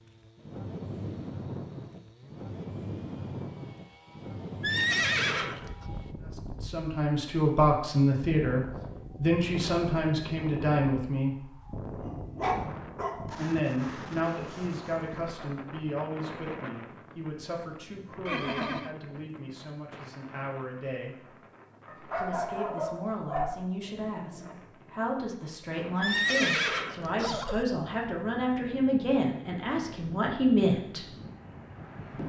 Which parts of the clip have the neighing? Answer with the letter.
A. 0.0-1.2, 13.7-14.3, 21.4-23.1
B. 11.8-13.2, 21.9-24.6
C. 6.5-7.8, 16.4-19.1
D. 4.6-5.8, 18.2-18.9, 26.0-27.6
D.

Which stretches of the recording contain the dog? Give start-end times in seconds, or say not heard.
11.8-13.2, 21.9-24.6.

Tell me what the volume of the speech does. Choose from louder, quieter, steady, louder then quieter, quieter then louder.
quieter then louder.